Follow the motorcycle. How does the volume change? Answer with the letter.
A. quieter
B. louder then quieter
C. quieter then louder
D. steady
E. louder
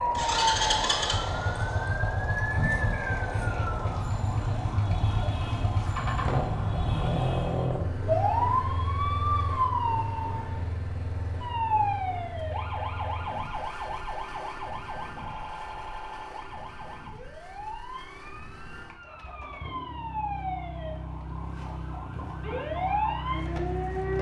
C.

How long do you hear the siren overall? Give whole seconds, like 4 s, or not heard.
24 s.